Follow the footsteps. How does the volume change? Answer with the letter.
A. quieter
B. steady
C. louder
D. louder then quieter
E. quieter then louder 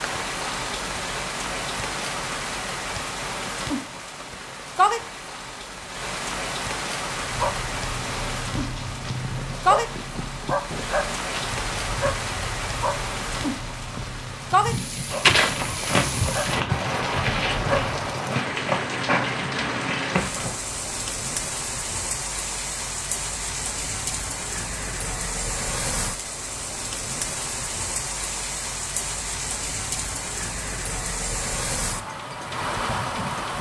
B.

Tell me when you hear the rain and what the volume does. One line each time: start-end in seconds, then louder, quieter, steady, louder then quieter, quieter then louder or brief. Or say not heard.
0.0-33.5 steady.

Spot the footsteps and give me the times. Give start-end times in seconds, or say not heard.
15.1-20.6.